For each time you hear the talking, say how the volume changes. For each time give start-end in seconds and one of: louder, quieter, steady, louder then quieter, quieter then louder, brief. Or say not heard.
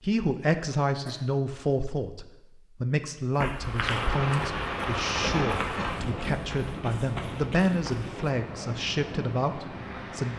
0.0-10.3 steady.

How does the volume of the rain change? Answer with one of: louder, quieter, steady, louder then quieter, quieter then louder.
quieter.